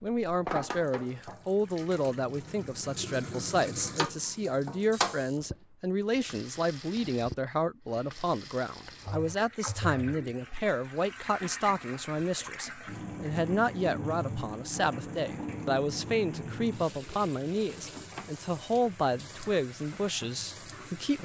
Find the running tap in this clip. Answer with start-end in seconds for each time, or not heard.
0.1-21.1.